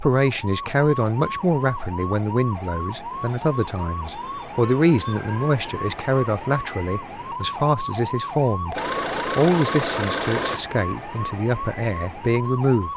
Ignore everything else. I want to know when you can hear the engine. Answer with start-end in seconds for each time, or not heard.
8.7-10.6.